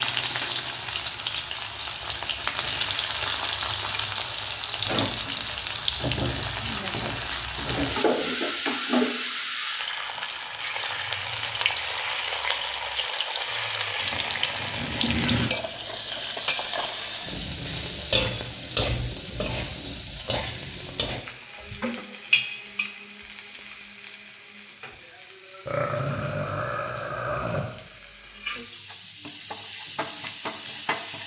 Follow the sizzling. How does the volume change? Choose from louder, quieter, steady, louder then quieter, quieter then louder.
quieter.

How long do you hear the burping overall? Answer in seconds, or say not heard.
2 s.